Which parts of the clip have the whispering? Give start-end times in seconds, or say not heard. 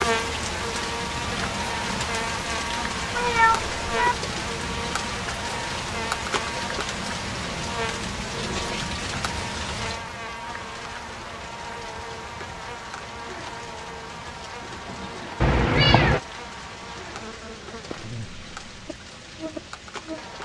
not heard.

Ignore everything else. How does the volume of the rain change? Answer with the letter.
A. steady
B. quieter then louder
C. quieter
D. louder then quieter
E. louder
C.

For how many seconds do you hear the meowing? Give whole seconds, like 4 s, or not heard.
2 s.